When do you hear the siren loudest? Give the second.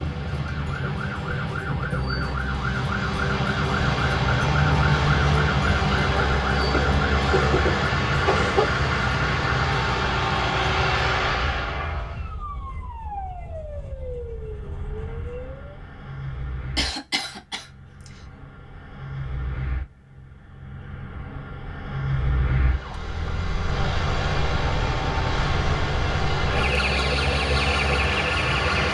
5 s.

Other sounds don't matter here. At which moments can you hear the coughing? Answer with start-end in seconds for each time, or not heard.
6.7-8.7, 16.8-17.6.